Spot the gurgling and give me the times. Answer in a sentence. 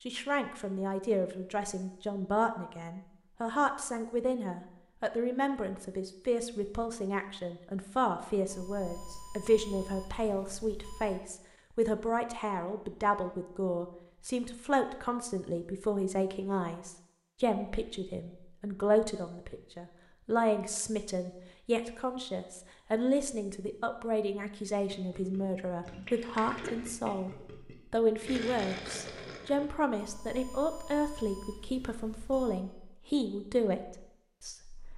You can hear the gurgling from 24.9 to 29.8 s.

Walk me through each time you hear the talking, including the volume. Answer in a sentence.
You can hear the talking from 0.1 to 27.3 s, at a steady volume; and from 27.9 to 34.9 s, at a steady volume.